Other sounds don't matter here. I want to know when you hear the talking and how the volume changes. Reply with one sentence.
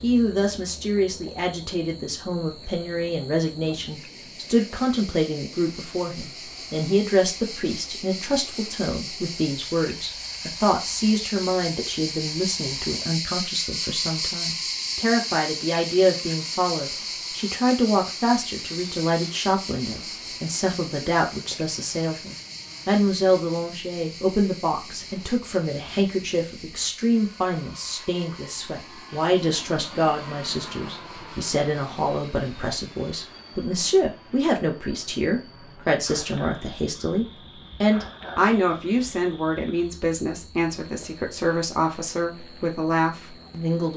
You can hear the talking from 0.0 to 43.9 s, at a steady volume.